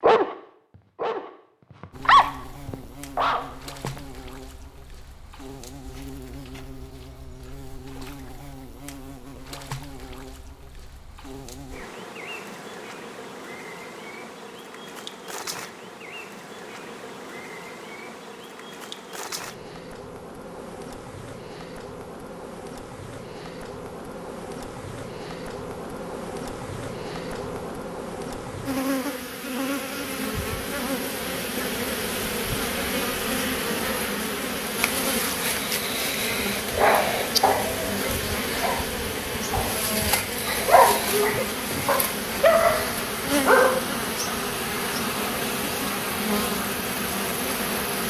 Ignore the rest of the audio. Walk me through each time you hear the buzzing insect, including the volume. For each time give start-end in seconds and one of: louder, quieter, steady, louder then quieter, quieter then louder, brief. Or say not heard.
1.9-48.0 louder.